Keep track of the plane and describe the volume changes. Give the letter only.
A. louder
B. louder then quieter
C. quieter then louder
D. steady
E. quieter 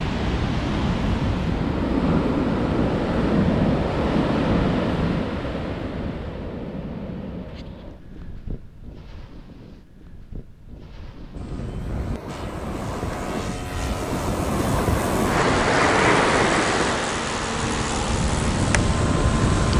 A.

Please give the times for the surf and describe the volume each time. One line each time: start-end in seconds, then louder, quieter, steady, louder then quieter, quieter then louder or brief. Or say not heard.
0.0-19.7 quieter then louder.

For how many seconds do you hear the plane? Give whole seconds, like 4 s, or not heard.
8 s.